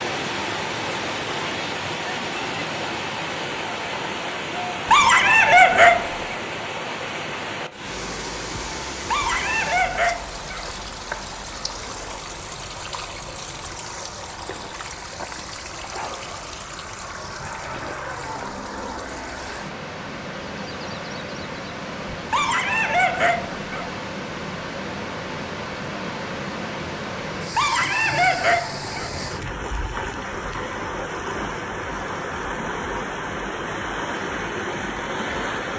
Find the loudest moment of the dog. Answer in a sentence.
The volume of the dog peaks at 6 seconds.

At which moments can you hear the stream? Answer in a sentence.
You can hear the stream from 0.0 to 35.7 s.